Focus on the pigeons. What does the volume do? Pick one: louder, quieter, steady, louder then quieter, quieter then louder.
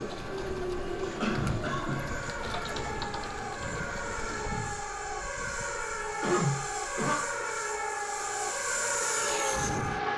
steady.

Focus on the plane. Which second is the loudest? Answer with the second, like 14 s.
9 s.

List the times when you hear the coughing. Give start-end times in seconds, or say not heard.
1.2-2.0, 6.2-7.2.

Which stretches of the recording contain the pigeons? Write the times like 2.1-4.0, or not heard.
0.0-4.6.